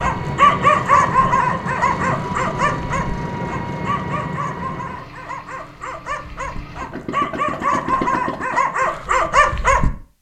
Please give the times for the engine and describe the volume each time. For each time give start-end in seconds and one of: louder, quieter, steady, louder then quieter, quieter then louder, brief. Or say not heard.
0.0-8.7 quieter then louder.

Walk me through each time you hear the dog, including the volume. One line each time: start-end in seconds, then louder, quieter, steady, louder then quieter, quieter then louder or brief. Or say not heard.
0.0-9.9 quieter then louder.